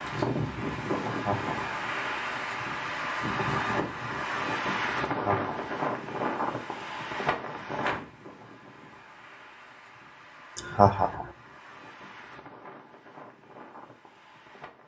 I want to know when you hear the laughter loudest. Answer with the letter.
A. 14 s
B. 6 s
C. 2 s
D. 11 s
D.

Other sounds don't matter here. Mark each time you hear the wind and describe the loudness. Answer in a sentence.
You can hear the wind from 0.0 to 14.8 s, getting quieter.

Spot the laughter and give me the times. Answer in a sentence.
The laughter can be heard from 1.1 to 1.6 s, from 5.0 to 5.8 s and from 10.6 to 11.2 s.